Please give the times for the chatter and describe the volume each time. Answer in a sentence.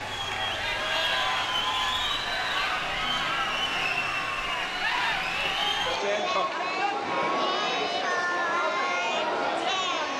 You can hear the chatter from 0.0 to 10.1 s, at a steady volume.